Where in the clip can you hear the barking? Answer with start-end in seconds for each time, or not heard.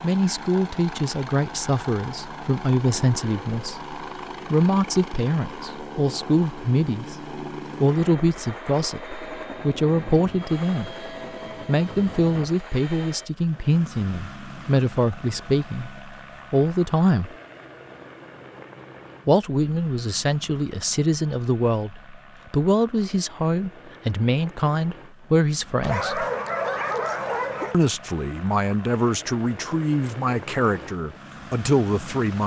25.8-27.8.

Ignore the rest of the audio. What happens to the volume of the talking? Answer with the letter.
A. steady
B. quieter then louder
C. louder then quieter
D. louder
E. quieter
A.